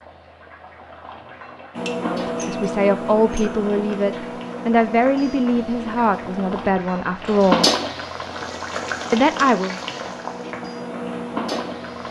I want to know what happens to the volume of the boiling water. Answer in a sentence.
The loudness of the boiling water goes up, then down.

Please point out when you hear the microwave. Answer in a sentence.
You can hear the microwave from 1.7 to 6.7 s and from 8.2 to 12.0 s.